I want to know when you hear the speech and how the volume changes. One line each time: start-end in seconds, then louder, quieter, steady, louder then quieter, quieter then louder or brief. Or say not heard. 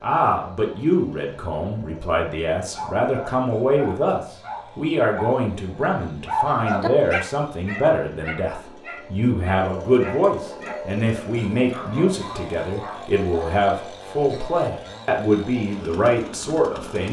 0.0-17.0 steady.